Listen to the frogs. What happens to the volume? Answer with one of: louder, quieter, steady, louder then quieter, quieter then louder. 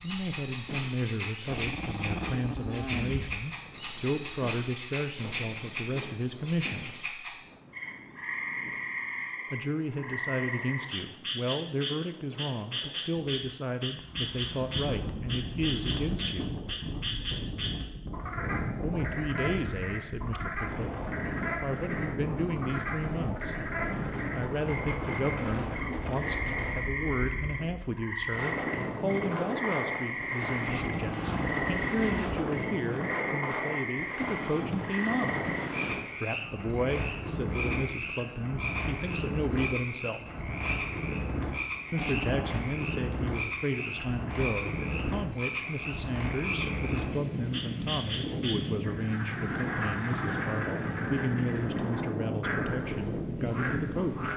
steady.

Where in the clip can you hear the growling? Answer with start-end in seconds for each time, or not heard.
1.4-3.5, 30.6-32.4, 42.0-42.6.